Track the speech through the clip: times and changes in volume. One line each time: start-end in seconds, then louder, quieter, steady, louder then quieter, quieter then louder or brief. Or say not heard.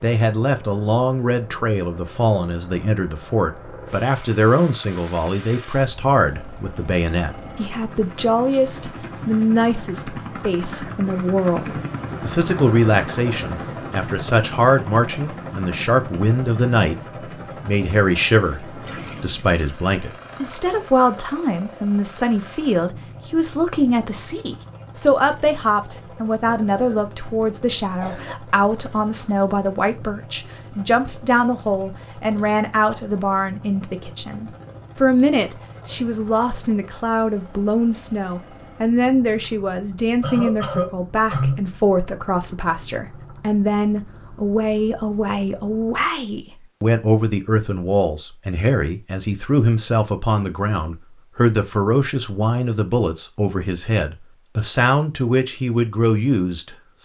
0.0-16.9 steady
17.6-57.0 steady.